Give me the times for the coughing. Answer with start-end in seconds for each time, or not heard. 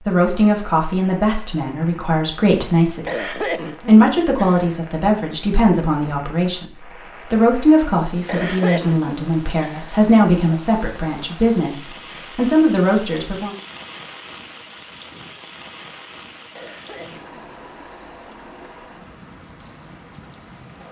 3.0-4.8, 8.2-10.1, 16.6-17.4.